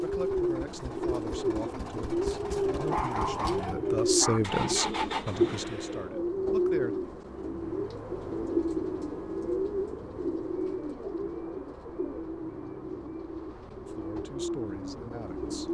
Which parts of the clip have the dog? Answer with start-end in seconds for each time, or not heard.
2.9-4.4.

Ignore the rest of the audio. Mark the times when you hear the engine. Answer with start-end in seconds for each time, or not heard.
0.0-6.0.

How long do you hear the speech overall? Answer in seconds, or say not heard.
9 s.